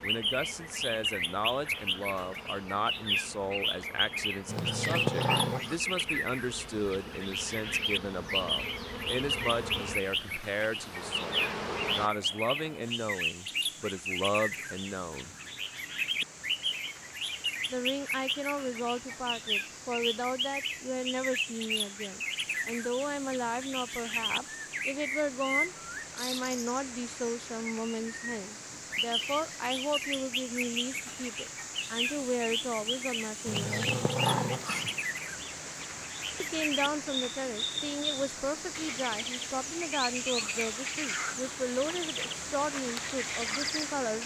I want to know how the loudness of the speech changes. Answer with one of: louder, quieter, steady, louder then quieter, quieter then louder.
steady.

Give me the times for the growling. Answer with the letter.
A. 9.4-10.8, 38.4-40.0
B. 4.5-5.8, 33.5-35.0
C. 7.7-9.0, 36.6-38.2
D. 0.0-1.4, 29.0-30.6
B.